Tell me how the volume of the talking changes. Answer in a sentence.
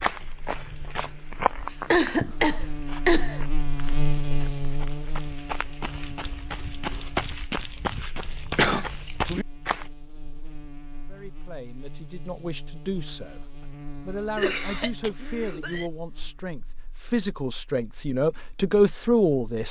The volume of the talking goes up.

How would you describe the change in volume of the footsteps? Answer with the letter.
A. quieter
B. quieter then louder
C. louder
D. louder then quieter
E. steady
B.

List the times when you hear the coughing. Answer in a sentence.
You can hear the coughing from 1.9 to 3.4 s, from 8.2 to 8.8 s and from 14.3 to 15.8 s.